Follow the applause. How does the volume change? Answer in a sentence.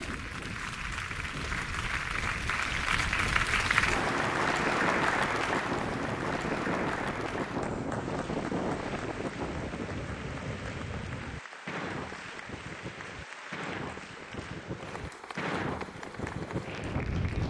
The loudness of the applause goes down.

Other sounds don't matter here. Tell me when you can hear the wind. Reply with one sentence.
The wind can be heard from 0.0 to 17.4 s.